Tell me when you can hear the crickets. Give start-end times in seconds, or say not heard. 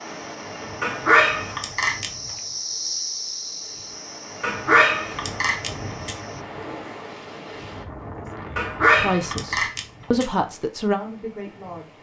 0.0-6.5.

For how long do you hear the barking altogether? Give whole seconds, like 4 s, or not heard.
5 s.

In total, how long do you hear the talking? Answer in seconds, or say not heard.
3 s.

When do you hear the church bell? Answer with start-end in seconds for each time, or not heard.
not heard.